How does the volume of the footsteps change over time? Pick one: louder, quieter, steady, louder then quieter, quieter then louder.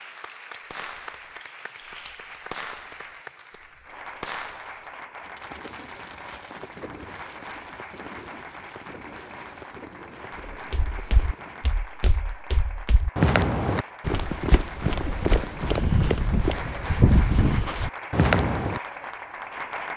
louder.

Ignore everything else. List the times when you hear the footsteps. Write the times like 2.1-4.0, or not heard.
10.5-18.8.